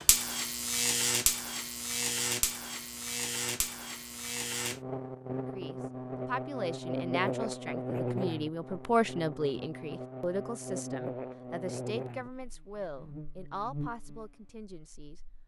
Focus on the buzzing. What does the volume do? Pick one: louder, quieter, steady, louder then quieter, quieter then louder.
quieter.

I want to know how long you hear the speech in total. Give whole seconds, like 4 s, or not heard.
10 s.